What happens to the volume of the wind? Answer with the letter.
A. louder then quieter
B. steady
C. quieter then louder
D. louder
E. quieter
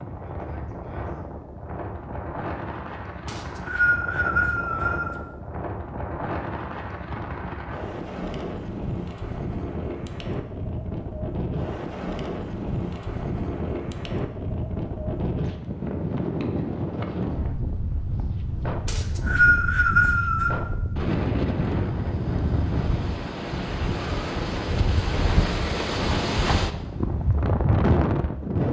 D.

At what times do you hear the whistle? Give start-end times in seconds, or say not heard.
3.2-5.2, 18.9-20.6.